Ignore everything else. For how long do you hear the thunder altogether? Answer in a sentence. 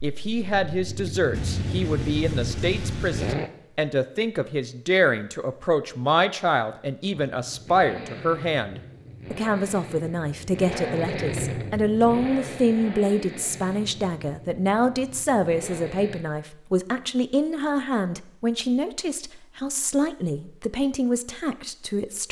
You can hear the thunder for 2 seconds altogether.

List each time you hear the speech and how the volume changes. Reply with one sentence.
The speech can be heard from 0.0 to 22.2 s, at a steady volume.